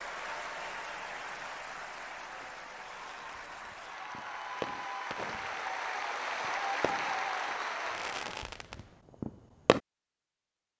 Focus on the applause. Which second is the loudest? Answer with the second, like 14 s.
7 s.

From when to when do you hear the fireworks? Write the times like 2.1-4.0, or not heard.
2.4-9.8.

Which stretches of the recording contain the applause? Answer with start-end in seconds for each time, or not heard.
0.0-8.4.